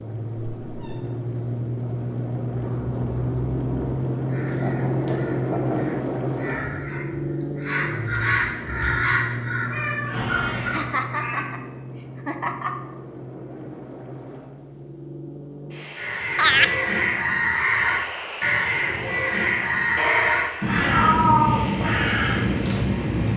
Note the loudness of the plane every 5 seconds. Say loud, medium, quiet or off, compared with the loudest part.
loud, loud, medium, medium, medium.